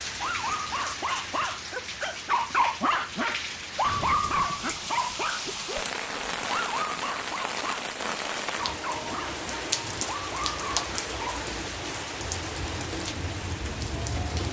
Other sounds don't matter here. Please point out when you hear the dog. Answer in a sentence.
The dog can be heard from 0.1 to 11.2 s.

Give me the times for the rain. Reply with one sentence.
You can hear the rain from 0.0 to 14.4 s.